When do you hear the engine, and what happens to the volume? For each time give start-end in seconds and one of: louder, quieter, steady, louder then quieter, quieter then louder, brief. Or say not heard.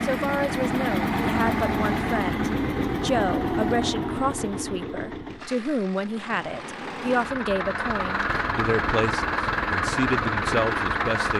0.0-11.3 quieter then louder.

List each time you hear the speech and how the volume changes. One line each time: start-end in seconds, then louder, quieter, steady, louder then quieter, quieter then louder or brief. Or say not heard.
0.0-11.3 steady.